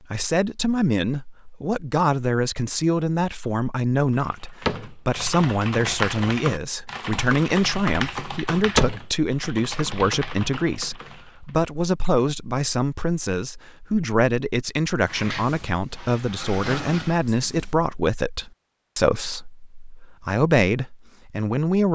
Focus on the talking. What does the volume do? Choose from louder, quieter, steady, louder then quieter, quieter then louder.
steady.